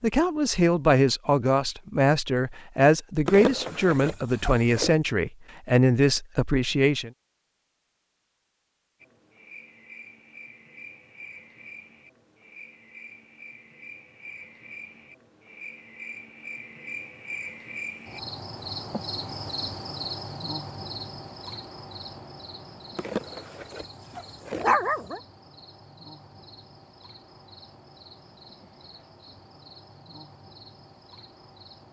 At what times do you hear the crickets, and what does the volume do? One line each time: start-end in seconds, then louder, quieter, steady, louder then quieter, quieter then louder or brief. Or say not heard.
9.0-31.8 louder then quieter.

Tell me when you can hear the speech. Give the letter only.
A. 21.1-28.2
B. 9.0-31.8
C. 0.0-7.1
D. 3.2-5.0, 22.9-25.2
C.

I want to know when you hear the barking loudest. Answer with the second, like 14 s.
25 s.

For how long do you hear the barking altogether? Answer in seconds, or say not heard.
4 s.